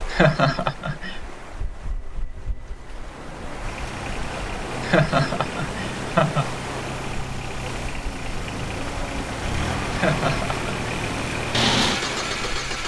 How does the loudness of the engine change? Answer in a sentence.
The loudness of the engine goes up.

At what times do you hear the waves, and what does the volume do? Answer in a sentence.
The waves can be heard from 0.0 to 12.8 s, getting louder.